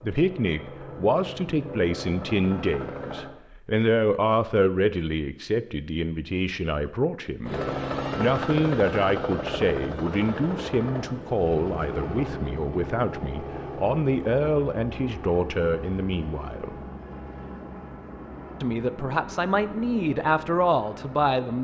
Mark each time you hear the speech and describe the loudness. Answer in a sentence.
You can hear the speech from 0.0 to 16.8 s, at a steady volume; and briefly from 18.6 to 21.5 s.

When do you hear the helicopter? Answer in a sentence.
The helicopter can be heard from 0.0 to 3.3 s and from 7.4 to 21.5 s.